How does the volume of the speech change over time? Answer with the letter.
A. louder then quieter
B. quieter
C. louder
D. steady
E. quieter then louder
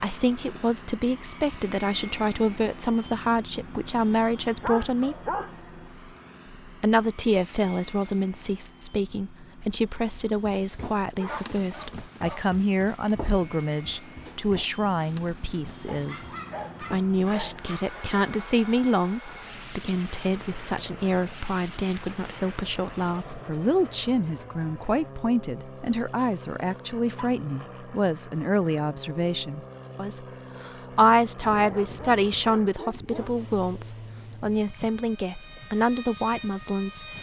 D.